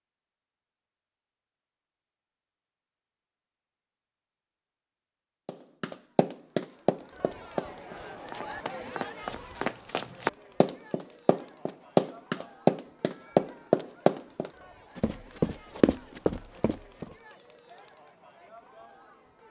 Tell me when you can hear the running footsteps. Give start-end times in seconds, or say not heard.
5.5-17.1.